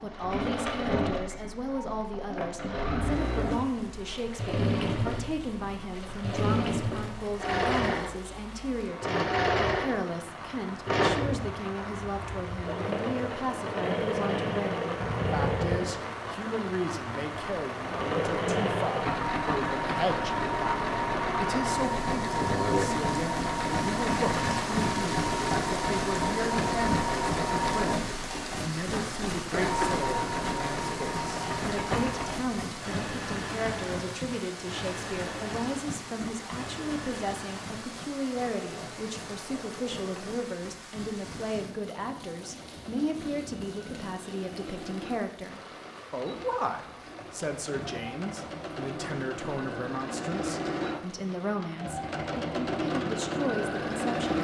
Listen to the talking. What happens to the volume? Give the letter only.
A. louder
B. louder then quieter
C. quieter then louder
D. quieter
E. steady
E.